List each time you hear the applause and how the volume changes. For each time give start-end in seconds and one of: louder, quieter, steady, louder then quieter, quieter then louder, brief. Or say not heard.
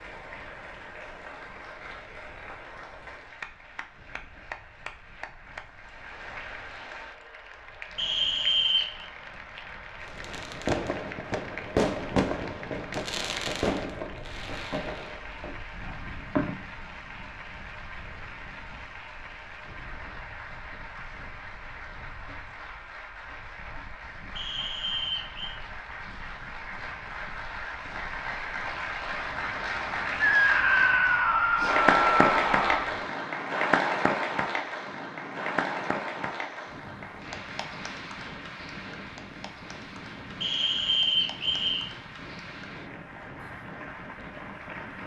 0.0-45.0 louder then quieter.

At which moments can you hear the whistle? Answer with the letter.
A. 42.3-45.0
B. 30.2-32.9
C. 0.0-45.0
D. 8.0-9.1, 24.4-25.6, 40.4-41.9
D.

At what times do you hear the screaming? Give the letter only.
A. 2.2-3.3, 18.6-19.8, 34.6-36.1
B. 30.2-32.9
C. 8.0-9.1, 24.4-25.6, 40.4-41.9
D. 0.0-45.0
B.